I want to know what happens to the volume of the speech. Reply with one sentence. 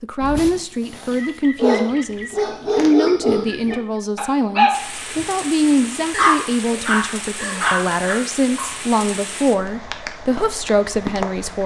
The loudness of the speech stays about the same.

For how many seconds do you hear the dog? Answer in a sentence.
The dog can be heard for 8 seconds in total.